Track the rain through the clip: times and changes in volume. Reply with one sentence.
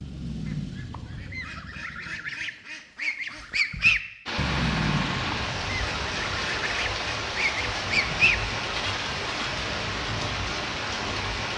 The rain can be heard from 4.2 to 11.5 s, at a steady volume.